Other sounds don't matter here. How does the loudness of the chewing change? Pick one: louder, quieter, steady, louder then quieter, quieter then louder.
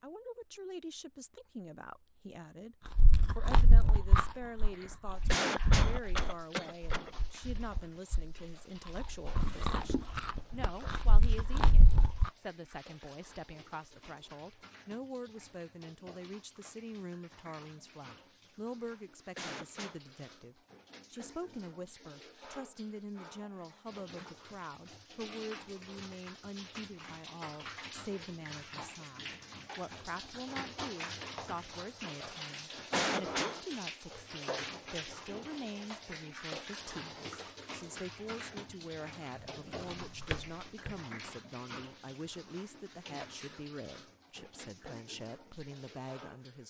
quieter then louder.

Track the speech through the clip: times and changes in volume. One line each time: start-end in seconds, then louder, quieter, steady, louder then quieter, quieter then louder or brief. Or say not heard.
0.0-46.6 steady.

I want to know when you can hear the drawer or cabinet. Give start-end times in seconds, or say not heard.
9.4-10.1, 39.4-41.0.